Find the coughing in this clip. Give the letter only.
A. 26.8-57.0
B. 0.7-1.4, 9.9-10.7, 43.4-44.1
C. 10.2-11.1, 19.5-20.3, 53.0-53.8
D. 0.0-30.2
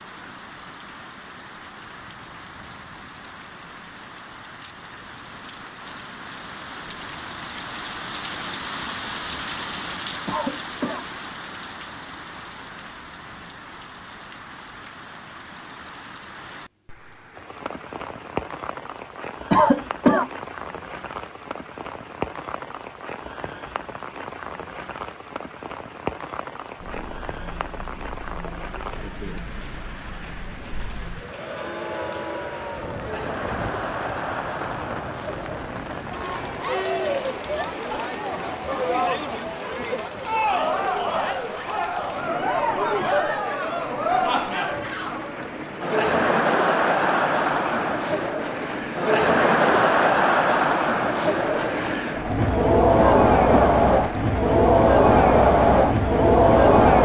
C.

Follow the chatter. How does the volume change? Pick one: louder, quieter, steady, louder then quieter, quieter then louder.
louder.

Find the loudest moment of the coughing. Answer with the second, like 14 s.
20 s.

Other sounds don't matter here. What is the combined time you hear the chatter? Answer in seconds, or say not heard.
30 s.